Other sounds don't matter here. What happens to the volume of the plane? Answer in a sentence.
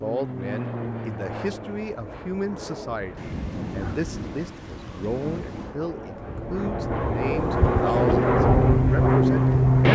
The loudness of the plane goes down, then up.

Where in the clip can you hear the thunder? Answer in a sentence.
The thunder can be heard from 3.1 to 5.8 s.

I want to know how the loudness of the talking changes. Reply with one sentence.
The volume of the talking stays about the same.